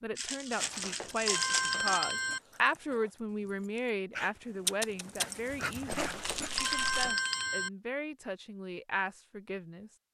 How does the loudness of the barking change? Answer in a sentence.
The loudness of the barking goes up.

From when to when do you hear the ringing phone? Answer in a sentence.
The ringing phone can be heard from 0.6 to 2.4 s and from 5.9 to 7.7 s.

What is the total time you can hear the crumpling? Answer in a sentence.
The crumpling can be heard for 3 seconds in total.